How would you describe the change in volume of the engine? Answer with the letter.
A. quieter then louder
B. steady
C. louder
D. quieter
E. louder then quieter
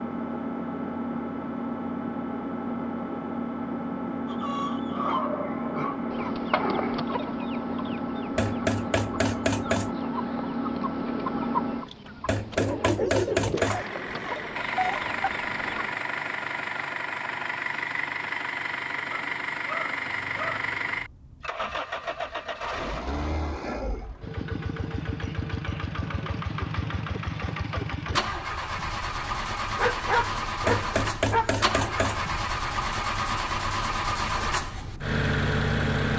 B.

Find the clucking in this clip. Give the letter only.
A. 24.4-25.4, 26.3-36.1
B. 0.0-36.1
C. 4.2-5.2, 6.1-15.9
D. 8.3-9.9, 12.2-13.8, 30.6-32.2
C.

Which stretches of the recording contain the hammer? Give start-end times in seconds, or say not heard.
8.3-9.9, 12.2-13.8, 30.6-32.2.